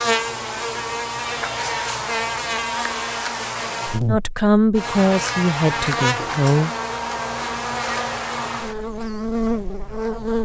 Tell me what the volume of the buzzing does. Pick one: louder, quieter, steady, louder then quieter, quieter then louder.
steady.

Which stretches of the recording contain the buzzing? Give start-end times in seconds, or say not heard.
0.0-10.3.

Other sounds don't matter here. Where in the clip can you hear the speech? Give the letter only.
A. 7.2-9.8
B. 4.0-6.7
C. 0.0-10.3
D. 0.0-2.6
B.